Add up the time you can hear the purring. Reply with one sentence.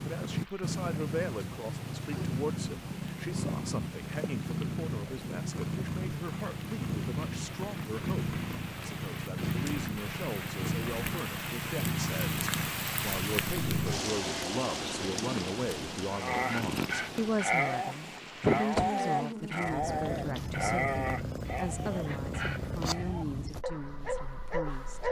You can hear the purring for 25 seconds altogether.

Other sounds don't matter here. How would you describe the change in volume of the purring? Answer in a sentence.
The volume of the purring stays about the same.